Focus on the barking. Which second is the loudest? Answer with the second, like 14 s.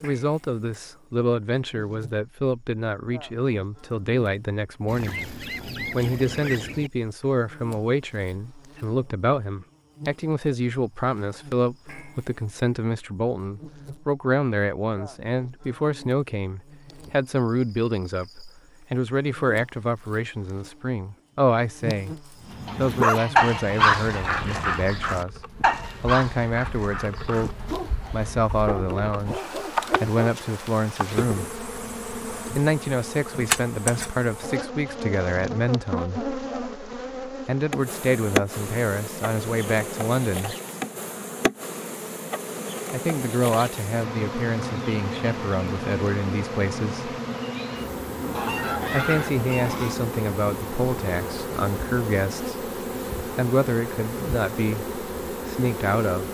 23 s.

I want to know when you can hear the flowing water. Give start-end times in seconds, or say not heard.
not heard.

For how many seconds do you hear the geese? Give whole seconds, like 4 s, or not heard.
6 s.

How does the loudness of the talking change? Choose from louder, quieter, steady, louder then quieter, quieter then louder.
steady.